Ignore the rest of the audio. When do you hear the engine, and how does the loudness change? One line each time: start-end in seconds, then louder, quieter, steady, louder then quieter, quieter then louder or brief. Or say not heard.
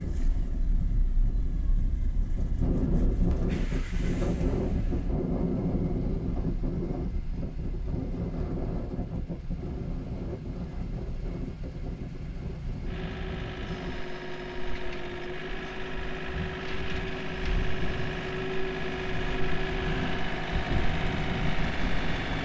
0.0-22.3 louder.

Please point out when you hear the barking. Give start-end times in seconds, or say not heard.
not heard.